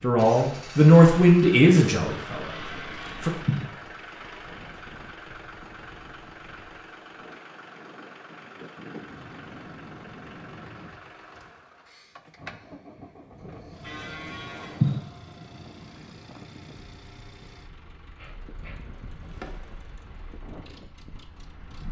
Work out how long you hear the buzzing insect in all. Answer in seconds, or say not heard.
2 s.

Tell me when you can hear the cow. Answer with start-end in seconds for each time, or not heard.
2.5-3.6, 13.8-14.9.